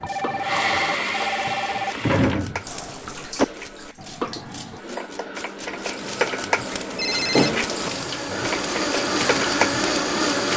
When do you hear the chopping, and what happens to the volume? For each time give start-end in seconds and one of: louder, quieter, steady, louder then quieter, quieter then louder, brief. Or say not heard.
0.0-10.5 louder.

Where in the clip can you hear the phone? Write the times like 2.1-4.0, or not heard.
0.0-1.9, 7.0-7.5.